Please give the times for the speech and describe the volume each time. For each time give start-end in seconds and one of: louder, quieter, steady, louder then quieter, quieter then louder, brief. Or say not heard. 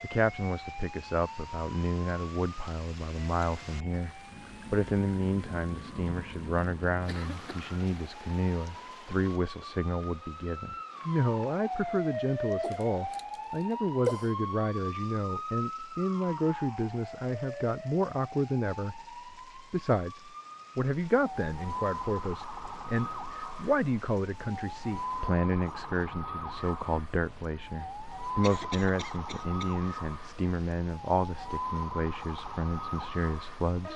0.0-33.9 steady.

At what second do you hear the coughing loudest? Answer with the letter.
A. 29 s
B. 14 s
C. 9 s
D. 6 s
B.